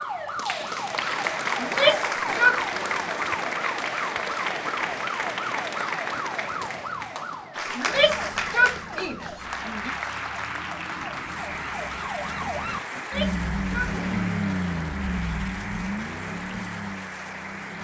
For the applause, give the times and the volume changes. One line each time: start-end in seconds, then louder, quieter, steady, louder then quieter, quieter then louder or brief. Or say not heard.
0.0-17.7 quieter.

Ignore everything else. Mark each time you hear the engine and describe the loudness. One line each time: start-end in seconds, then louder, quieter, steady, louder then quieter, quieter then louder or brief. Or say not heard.
13.1-17.7 quieter.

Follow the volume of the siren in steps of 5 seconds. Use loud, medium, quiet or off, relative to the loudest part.
loud, loud, loud, off.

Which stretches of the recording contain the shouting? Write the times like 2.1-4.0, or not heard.
1.6-2.6, 7.8-9.9, 12.9-13.9.